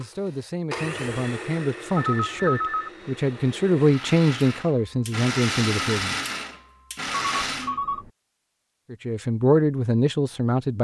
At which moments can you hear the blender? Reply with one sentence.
The blender can be heard from 0.0 to 7.8 s.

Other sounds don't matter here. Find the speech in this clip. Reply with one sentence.
The speech can be heard from 0.0 to 6.2 s and from 8.9 to 10.7 s.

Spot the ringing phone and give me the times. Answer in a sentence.
The ringing phone can be heard from 1.9 to 2.9 s and from 7.0 to 8.1 s.